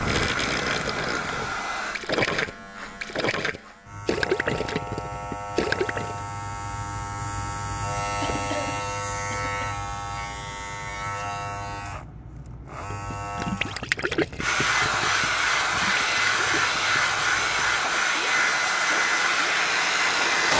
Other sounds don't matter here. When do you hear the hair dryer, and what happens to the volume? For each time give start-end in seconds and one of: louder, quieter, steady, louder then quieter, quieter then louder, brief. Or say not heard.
0.0-2.0 brief
14.4-20.5 steady.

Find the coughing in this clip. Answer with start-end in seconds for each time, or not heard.
8.2-9.8.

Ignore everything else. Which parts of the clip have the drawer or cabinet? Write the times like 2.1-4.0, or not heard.
not heard.